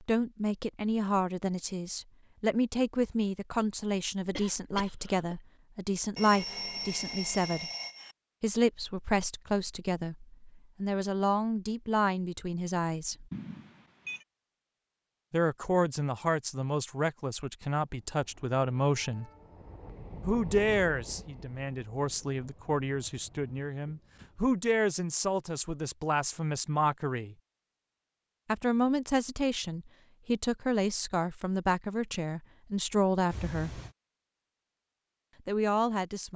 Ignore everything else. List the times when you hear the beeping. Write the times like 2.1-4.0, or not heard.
6.2-8.2, 13.3-14.2, 33.3-34.0.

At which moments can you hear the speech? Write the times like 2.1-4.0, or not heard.
0.0-7.7, 8.4-13.2, 15.3-19.3, 20.2-27.4, 28.4-33.8, 35.5-36.3.